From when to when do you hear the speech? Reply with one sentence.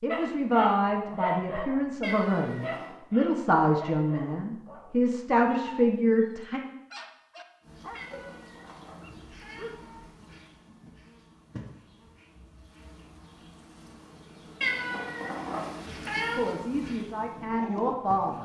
You can hear the speech from 0.0 to 6.6 s and from 16.4 to 18.3 s.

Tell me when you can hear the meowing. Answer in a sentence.
You can hear the meowing from 2.0 to 3.0 s, from 8.0 to 10.1 s and from 14.6 to 16.6 s.